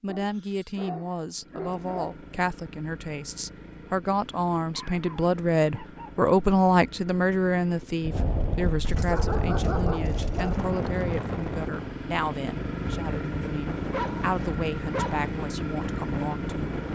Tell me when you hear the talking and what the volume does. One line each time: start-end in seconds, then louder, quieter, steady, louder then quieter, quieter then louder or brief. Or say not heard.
0.0-16.9 louder then quieter.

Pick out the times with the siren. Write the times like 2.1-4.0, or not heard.
not heard.